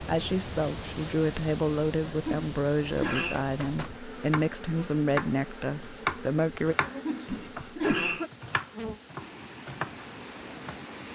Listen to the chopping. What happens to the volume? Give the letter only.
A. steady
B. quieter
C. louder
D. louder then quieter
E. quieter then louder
D.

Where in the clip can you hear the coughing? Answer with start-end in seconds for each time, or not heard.
2.0-3.4, 6.8-8.3.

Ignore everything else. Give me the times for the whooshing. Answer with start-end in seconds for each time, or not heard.
7.2-8.2.